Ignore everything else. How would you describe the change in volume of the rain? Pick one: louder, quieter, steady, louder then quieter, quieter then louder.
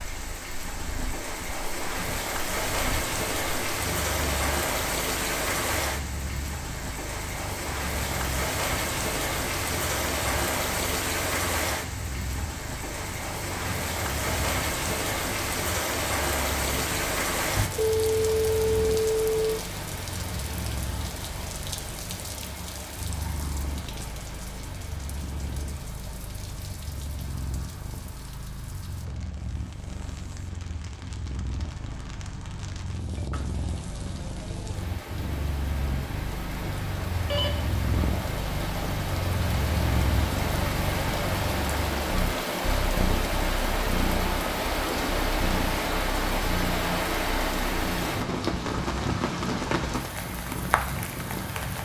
quieter then louder.